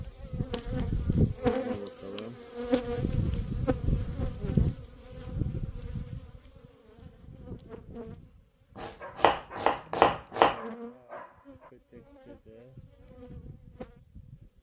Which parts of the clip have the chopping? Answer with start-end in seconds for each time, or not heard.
8.8-10.6.